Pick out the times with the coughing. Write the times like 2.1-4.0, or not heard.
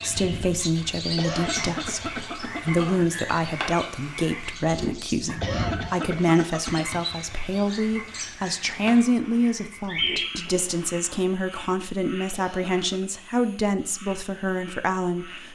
1.1-3.1, 5.4-6.8, 12.3-13.1.